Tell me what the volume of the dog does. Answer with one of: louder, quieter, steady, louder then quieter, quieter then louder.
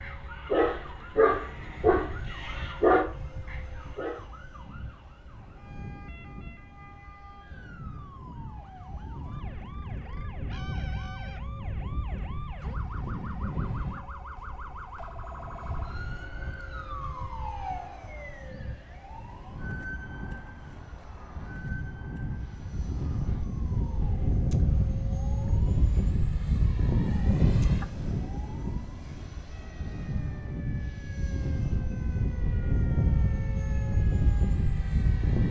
quieter.